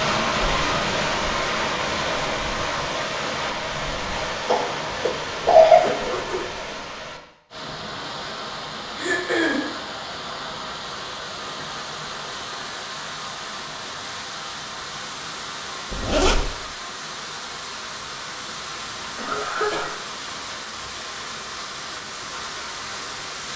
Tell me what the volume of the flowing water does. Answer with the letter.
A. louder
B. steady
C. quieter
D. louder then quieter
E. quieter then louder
C.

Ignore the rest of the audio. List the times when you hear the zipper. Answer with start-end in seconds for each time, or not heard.
5.0-6.7, 15.9-16.5.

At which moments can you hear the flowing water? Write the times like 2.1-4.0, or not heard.
0.0-23.5.